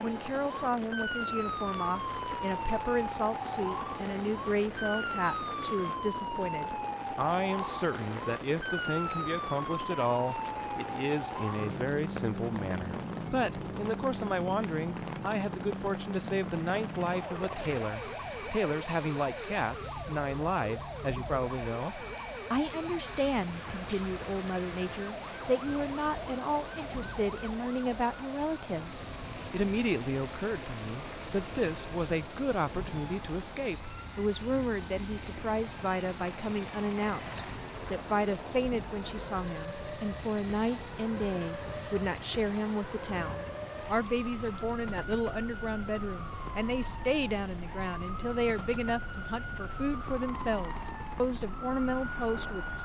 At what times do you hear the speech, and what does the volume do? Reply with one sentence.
You can hear the speech from 0.0 to 52.8 s, at a steady volume.